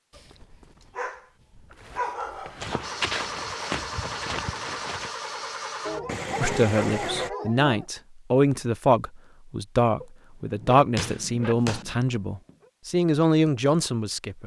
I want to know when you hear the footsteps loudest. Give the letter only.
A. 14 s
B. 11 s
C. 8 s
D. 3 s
D.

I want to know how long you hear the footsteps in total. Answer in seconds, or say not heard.
3 s.